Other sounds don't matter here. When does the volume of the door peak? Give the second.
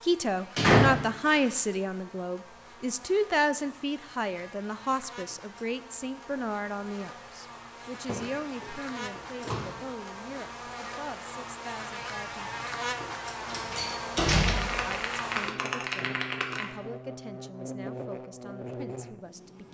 1 s.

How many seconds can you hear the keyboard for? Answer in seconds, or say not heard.
2 s.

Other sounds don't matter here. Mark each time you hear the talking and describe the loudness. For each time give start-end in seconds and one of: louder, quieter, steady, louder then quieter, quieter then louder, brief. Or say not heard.
0.0-12.6 quieter
14.7-19.7 steady.